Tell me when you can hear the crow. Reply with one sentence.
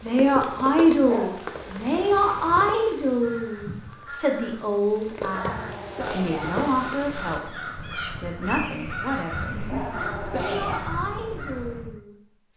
You can hear the crow from 2.0 to 12.0 s.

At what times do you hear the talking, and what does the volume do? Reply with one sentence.
The talking can be heard from 0.0 to 12.5 s, getting quieter.